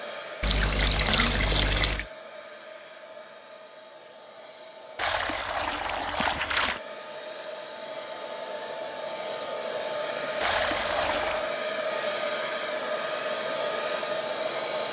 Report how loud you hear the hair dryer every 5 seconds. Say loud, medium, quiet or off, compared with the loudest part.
quiet, medium, loud.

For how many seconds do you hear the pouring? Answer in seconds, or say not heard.
5 s.